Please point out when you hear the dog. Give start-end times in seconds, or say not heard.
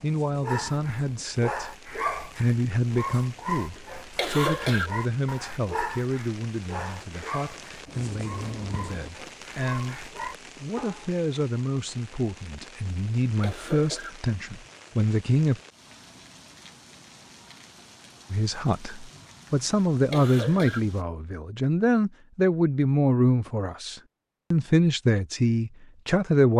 0.4-11.1.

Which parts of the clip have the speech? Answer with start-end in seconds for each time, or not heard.
0.0-15.6, 18.3-26.5.